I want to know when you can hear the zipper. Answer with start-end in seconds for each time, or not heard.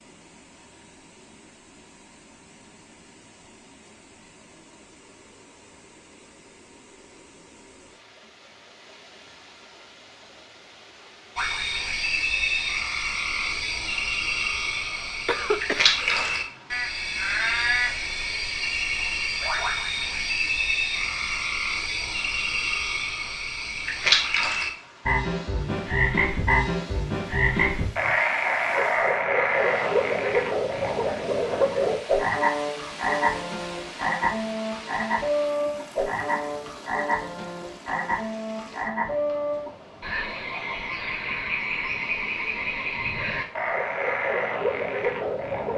not heard.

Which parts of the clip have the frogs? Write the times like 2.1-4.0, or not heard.
11.3-45.7.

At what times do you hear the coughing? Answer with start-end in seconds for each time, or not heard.
15.2-16.4.